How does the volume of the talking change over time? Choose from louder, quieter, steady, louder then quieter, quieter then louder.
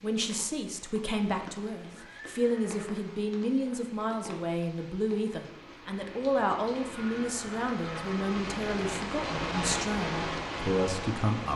steady.